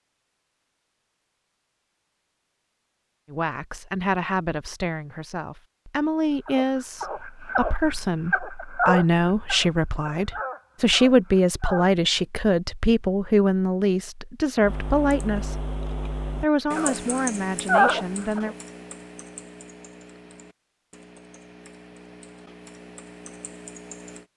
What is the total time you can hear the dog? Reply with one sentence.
The dog can be heard for 7 seconds in total.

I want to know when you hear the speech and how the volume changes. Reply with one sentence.
The speech can be heard from 3.3 to 15.6 s, getting louder; and briefly from 16.4 to 18.6 s.